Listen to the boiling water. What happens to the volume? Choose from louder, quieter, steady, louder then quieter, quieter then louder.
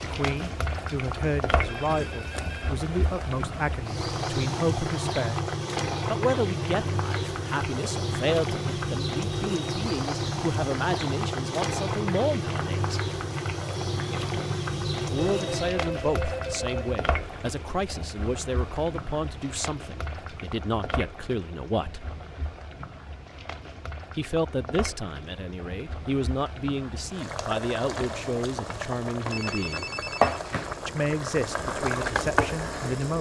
quieter then louder.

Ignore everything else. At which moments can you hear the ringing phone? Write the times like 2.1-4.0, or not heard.
1.6-2.8, 15.2-16.9, 29.3-30.4.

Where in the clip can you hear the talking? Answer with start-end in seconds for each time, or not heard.
0.0-5.5, 6.0-13.0, 15.1-22.1, 24.1-29.9, 30.9-33.1.